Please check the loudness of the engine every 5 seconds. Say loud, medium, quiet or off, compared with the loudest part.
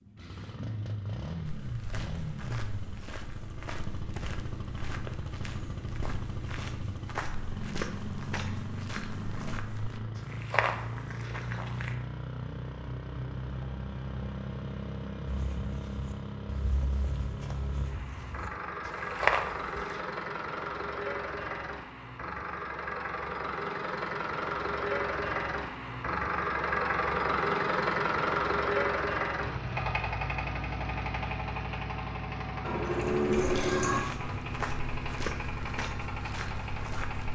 medium, medium, medium, medium, medium, loud, medium, medium.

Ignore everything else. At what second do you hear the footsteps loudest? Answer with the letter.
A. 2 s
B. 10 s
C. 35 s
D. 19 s
D.